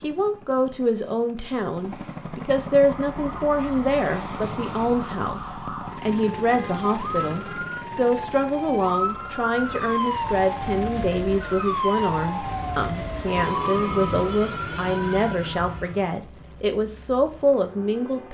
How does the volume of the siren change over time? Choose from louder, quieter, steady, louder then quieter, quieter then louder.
louder.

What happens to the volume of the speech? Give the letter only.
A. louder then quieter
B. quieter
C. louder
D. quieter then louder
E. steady
E.